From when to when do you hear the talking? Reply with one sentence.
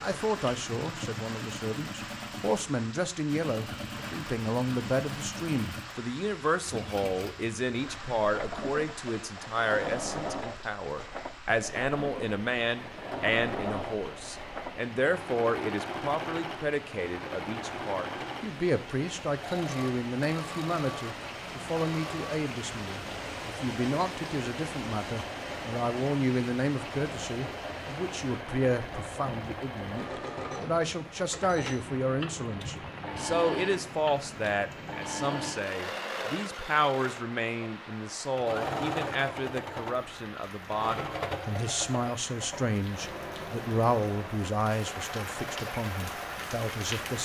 The talking can be heard from 0.0 to 47.1 s.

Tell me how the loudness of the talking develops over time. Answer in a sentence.
The loudness of the talking stays about the same.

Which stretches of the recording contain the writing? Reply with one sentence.
The writing can't be heard in this clip.